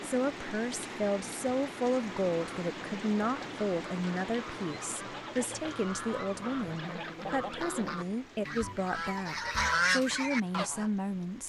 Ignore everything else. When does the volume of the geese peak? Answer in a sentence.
The loudest moment of the geese is at 10 seconds.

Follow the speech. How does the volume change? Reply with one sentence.
The volume of the speech stays about the same.